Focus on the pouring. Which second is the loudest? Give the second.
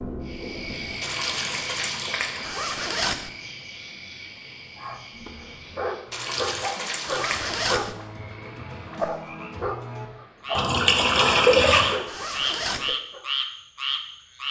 12 s.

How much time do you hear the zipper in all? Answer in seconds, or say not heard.
3 s.